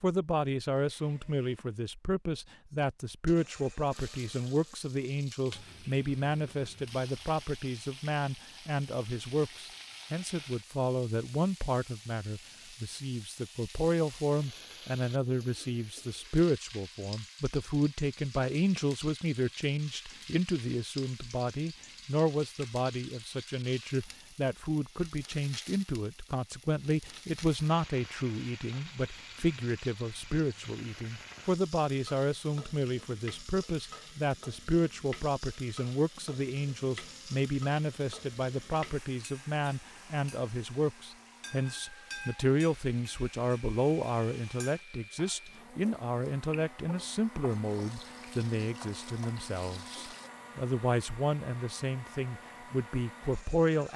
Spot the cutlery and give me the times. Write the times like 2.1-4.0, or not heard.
not heard.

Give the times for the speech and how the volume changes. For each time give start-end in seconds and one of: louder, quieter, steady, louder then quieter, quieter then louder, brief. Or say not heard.
0.0-53.9 steady.